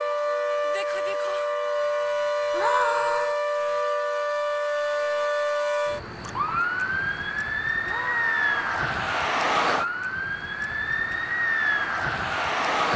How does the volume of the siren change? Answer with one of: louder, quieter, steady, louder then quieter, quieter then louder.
steady.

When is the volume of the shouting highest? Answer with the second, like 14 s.
3 s.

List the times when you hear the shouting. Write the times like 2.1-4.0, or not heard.
2.5-3.4, 7.8-8.8.